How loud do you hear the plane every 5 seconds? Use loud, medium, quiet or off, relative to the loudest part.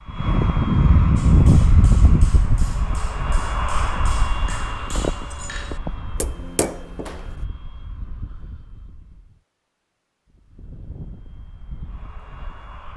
loud, quiet, quiet.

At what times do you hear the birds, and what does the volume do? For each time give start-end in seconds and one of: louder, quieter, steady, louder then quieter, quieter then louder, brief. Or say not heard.
not heard.